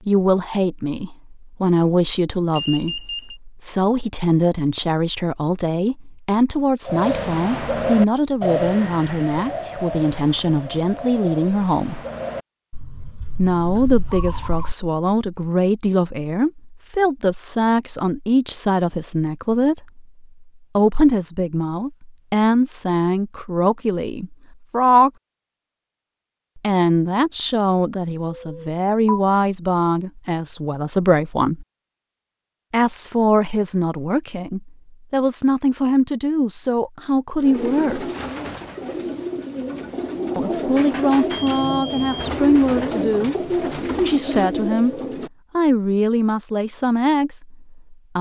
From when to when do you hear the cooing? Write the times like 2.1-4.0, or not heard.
6.8-14.8, 37.4-45.3.